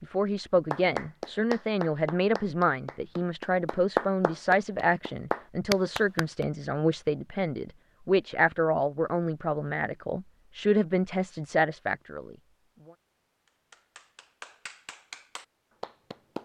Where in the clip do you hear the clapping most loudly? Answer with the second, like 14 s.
4 s.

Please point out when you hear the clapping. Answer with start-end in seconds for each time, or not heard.
0.7-6.5, 13.4-16.3.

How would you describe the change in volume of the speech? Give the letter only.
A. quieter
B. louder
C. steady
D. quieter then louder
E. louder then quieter
C.